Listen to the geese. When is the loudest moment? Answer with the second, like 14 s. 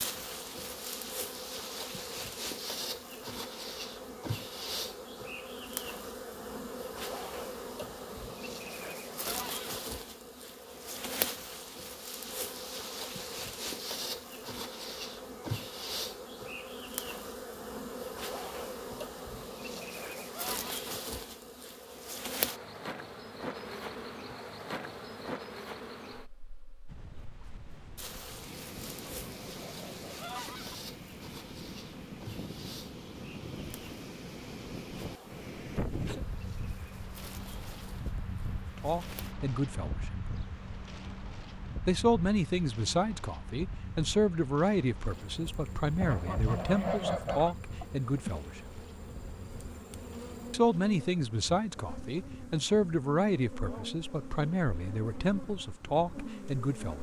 47 s.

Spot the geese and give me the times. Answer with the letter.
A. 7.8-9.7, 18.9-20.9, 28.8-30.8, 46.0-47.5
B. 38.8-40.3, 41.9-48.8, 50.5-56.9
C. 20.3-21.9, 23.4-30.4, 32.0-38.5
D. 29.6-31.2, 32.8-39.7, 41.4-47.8
A.